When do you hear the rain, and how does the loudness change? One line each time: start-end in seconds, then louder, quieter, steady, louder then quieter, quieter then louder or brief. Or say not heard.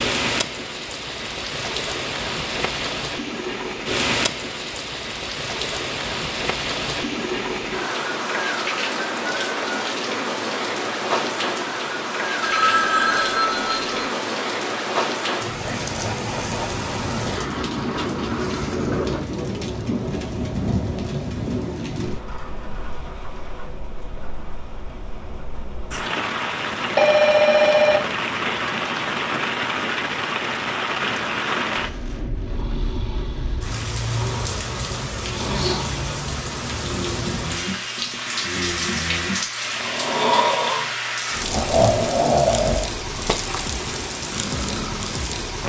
0.0-45.6 steady.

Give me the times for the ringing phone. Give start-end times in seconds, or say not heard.
12.4-14.1, 26.9-28.0.